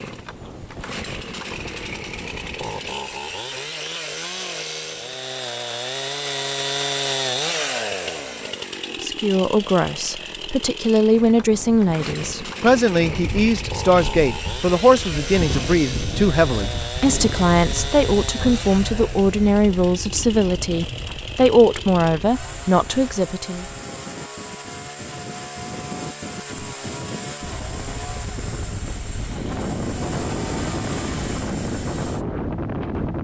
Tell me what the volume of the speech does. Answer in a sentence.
The volume of the speech stays about the same.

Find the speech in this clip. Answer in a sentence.
You can hear the speech from 9.0 to 23.6 s.